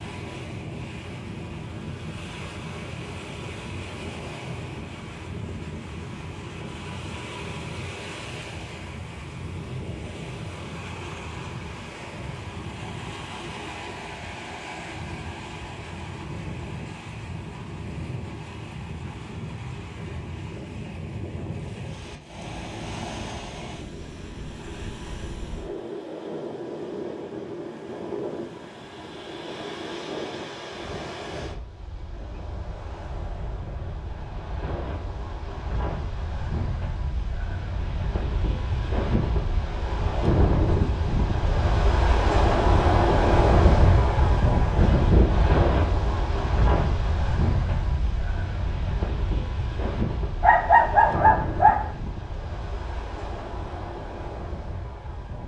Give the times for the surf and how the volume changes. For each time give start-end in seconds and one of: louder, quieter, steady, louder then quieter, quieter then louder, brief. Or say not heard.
0.0-55.4 louder.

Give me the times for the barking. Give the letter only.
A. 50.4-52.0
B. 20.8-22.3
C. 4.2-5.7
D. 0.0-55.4
A.